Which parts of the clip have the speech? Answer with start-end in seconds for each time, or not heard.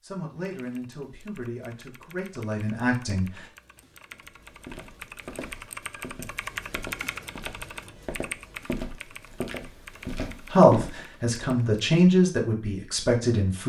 0.0-3.3, 10.5-13.6.